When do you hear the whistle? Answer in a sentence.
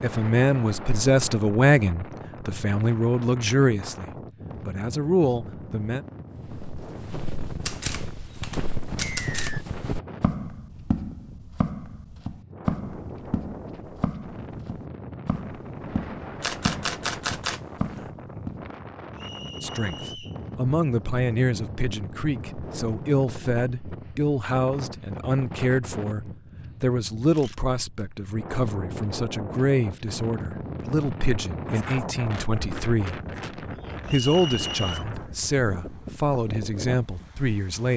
You can hear the whistle from 9.1 to 9.7 s, from 19.1 to 20.4 s and from 34.0 to 35.0 s.